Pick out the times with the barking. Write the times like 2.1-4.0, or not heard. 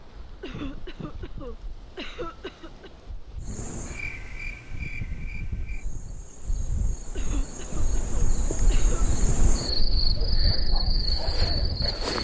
not heard.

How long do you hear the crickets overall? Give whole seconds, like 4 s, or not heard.
9 s.